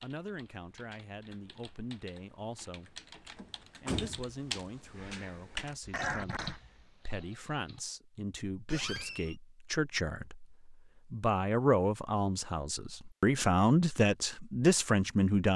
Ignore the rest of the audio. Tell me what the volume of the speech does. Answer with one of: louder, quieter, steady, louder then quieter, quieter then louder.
louder.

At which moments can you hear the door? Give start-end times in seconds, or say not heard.
3.4-4.3, 8.7-9.3.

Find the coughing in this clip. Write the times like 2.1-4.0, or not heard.
5.9-6.6.